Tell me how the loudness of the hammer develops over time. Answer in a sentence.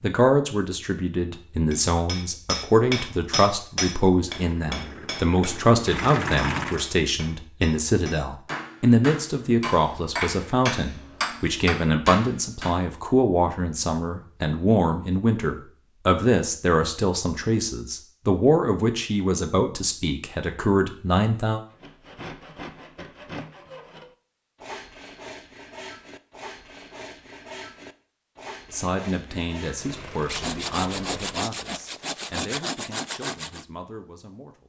The loudness of the hammer goes down, then up.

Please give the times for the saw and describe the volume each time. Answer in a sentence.
You can hear the saw from 21.7 to 33.6 s, getting louder.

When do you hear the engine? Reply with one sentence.
The engine can be heard from 4.3 to 6.8 s and from 29.7 to 31.5 s.